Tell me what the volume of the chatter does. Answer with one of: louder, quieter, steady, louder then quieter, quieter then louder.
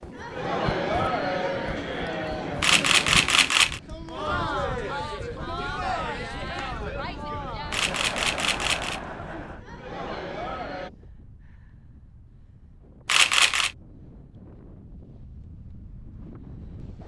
quieter.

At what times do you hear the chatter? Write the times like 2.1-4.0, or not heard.
0.1-10.9.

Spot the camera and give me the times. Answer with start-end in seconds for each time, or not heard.
2.6-3.8, 7.7-9.0, 13.1-13.7.